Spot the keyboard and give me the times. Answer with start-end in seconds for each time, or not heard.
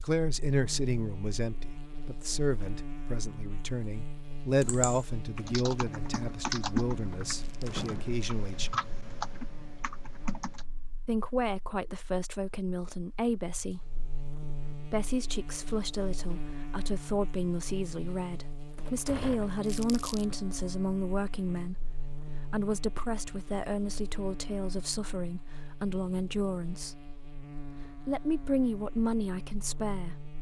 4.6-10.7.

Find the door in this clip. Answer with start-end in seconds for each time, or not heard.
7.7-8.2, 18.8-19.6.